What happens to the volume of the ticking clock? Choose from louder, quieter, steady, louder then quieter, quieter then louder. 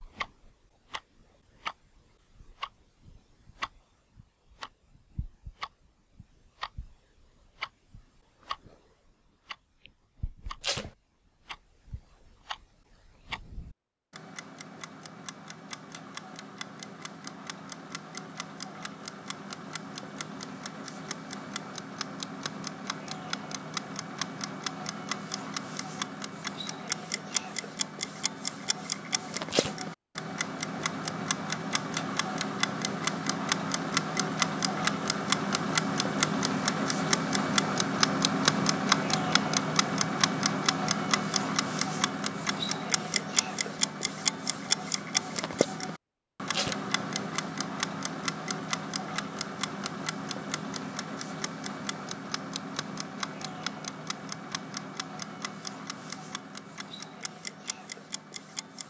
louder then quieter.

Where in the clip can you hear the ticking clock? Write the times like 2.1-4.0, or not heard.
0.0-58.8.